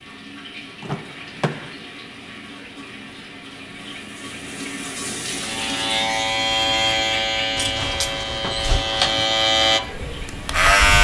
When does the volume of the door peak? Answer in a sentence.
The loudest moment of the door is at 9 seconds.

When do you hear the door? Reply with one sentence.
You can hear the door from 0.8 to 1.8 s and from 7.5 to 9.3 s.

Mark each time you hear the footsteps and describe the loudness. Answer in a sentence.
You can't hear the footsteps here.